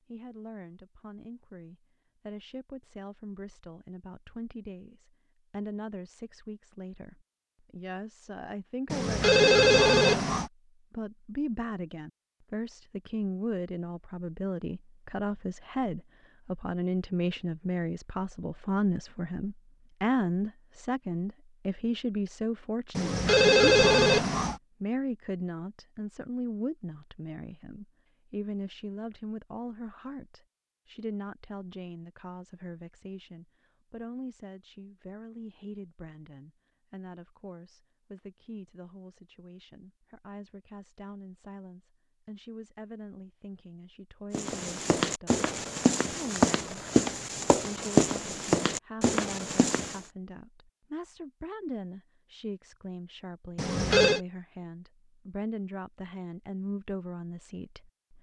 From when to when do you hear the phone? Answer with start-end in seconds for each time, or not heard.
8.9-10.5, 22.9-24.6, 53.5-54.2.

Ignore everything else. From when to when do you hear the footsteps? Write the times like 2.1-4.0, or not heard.
44.3-50.0.